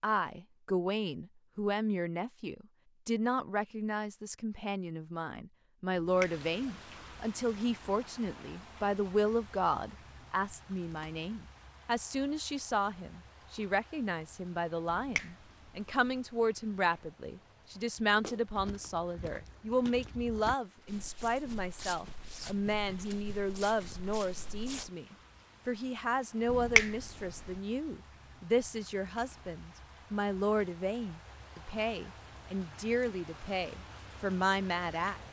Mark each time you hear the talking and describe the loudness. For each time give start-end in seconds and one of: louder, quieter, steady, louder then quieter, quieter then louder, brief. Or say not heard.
0.0-35.2 steady.